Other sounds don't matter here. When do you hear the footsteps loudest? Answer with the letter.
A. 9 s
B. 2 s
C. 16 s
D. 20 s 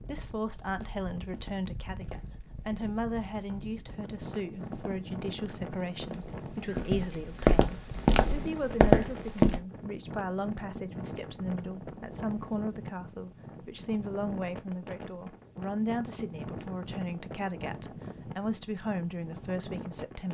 A.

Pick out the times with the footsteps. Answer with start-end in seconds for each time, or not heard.
0.0-9.6.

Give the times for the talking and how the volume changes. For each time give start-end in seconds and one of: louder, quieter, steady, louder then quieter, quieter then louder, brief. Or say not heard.
0.0-20.2 steady.